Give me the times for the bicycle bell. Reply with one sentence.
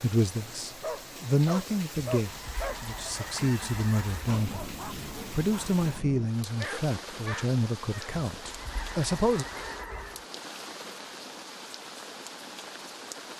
The bicycle bell can't be heard in this clip.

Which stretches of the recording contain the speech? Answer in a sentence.
You can hear the speech from 0.0 to 9.4 s.